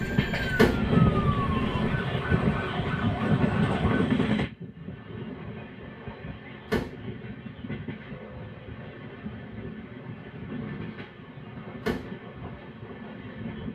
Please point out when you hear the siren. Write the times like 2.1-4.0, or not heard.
0.0-4.1.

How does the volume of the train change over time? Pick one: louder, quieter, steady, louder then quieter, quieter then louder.
quieter.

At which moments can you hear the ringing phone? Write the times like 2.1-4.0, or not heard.
not heard.